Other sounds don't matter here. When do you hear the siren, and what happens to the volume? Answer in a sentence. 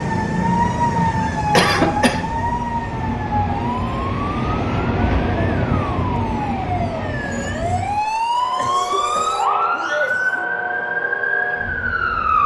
You can hear the siren from 0.0 to 12.4 s, getting quieter then louder.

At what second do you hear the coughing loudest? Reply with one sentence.
The volume of the coughing peaks at 2 seconds.